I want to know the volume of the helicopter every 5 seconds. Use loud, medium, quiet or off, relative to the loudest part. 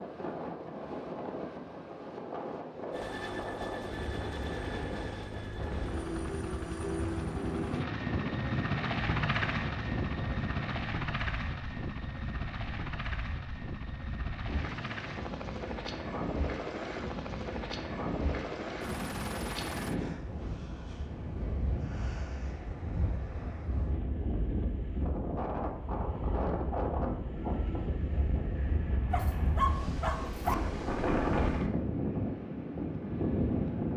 medium, loud, loud, medium, off, off, off.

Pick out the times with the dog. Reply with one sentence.
You can hear the dog from 29.1 to 30.6 s.